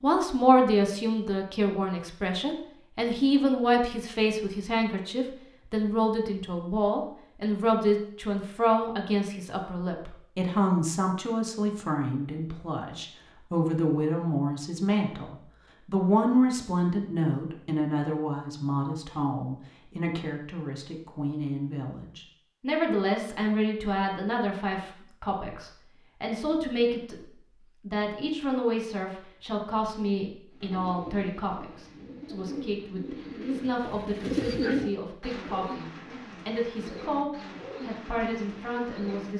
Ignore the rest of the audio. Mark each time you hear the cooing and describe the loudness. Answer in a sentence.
The cooing can be heard from 30.5 to 39.3 s, getting louder then quieter.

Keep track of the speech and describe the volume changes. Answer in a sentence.
The volume of the speech goes down.